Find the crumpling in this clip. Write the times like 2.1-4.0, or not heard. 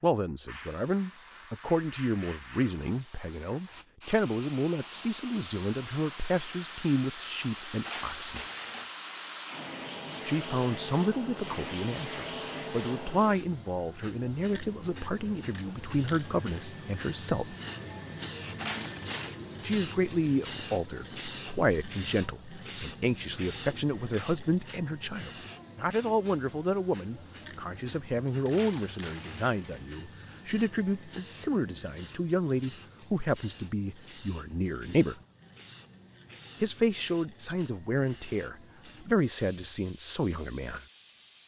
7.8-8.9, 18.6-19.4, 28.5-29.9.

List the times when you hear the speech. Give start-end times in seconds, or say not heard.
0.0-8.4, 10.2-17.6, 19.6-35.1, 36.6-40.8.